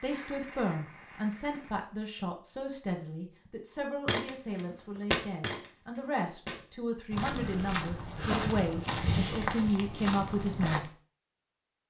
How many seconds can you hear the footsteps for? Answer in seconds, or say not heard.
7 s.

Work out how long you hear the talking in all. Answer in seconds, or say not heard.
11 s.